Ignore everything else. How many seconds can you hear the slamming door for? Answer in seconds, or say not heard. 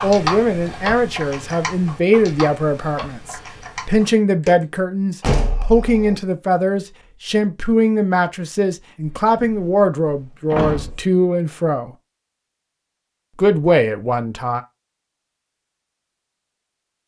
3 s.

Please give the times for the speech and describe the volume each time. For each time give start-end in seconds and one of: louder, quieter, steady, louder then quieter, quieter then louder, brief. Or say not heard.
0.0-11.9 steady
13.3-14.6 brief.